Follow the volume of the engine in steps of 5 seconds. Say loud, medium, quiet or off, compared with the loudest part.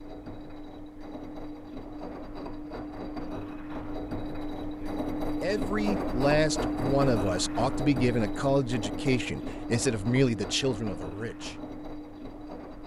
medium, loud, medium.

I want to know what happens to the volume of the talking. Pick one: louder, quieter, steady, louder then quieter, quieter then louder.
steady.